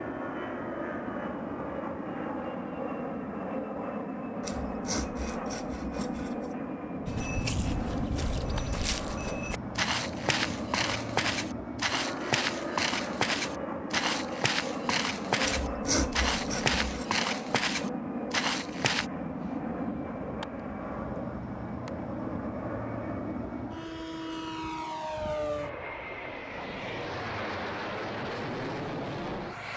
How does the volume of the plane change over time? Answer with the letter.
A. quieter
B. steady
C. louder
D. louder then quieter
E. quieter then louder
B.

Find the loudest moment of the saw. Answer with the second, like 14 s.
16 s.